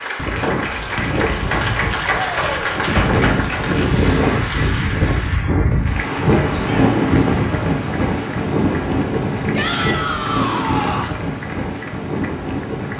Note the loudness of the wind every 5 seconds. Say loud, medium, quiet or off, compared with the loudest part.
loud, loud, medium.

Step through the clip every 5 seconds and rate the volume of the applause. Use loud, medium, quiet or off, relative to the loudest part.
loud, medium, quiet.